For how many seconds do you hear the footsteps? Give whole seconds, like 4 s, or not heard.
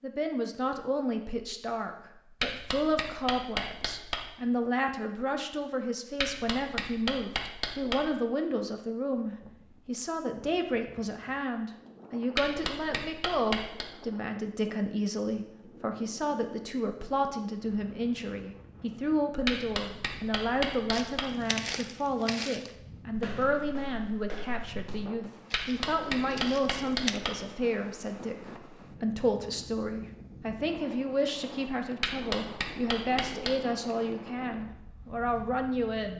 6 s.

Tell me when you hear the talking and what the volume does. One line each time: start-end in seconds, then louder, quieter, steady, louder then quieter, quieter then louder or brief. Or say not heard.
0.0-36.1 steady.